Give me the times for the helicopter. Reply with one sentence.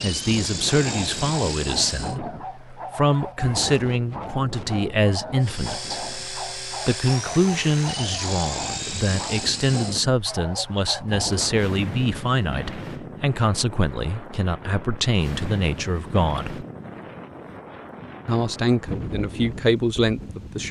The helicopter can be heard from 0.0 to 2.2 s and from 5.4 to 10.1 s.